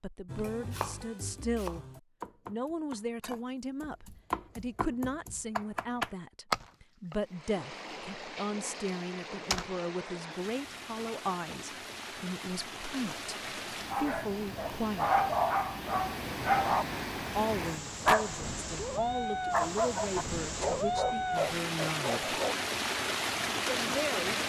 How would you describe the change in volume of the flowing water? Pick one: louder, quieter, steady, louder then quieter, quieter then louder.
louder.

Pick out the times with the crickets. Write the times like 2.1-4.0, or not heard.
not heard.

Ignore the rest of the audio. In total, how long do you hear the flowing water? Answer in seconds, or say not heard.
17 s.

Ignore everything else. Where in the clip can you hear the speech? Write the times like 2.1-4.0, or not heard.
0.0-1.9, 2.5-15.2, 17.4-22.4, 23.6-24.4.